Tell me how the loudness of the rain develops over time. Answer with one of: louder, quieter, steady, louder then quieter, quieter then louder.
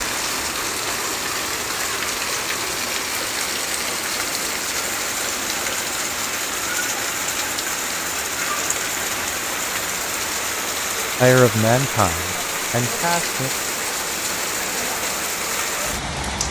steady.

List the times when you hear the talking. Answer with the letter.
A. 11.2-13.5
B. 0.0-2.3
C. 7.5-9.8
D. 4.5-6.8
A.